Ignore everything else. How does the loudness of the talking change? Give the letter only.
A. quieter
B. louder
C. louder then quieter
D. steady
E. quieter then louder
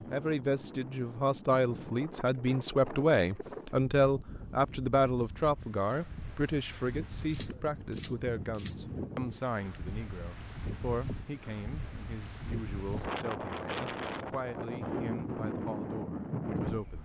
A.